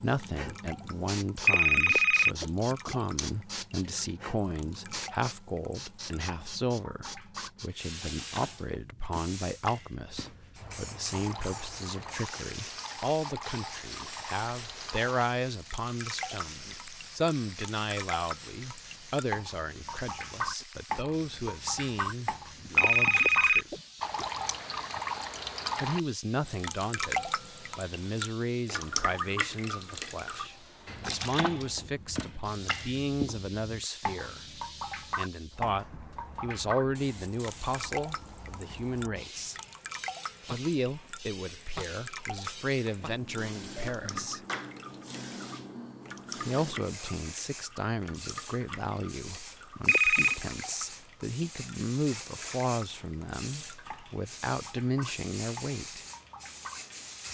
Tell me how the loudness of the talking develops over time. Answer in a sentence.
The loudness of the talking stays about the same.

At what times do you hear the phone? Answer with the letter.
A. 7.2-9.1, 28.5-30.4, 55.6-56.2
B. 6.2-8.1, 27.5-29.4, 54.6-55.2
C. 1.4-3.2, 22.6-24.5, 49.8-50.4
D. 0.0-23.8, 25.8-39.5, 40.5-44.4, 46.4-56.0
C.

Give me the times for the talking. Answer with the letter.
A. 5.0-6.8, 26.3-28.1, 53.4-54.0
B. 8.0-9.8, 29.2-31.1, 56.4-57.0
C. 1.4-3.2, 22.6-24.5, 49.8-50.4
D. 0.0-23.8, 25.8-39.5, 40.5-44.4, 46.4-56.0
D.